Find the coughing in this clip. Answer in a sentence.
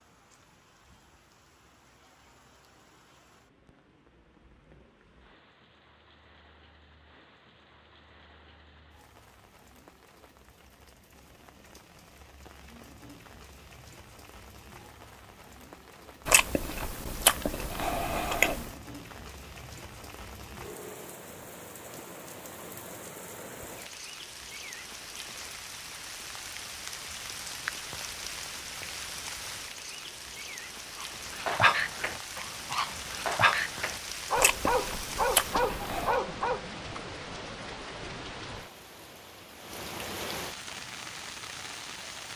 The coughing can't be heard in this clip.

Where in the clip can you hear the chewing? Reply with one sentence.
You can hear the chewing from 16.2 to 18.7 s and from 34.4 to 36.2 s.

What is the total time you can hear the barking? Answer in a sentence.
You can hear the barking for 6 seconds altogether.